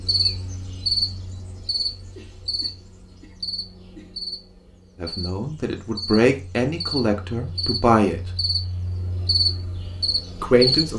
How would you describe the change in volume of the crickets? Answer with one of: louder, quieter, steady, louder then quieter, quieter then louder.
quieter then louder.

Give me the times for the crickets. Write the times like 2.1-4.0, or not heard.
0.0-10.9.